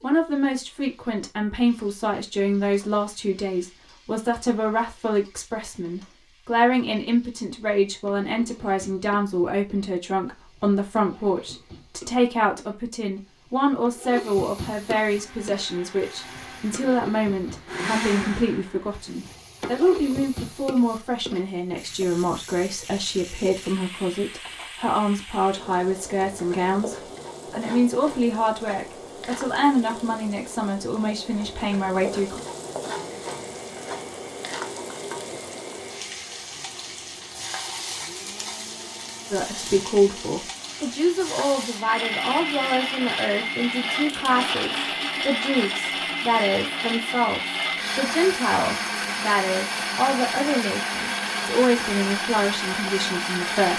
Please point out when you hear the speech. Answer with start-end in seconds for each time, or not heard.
0.0-32.4, 39.3-53.7.